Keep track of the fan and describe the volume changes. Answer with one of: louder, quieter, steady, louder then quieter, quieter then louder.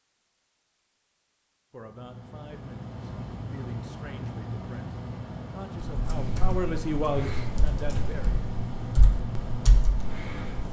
steady.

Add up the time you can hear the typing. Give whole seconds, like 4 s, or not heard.
5 s.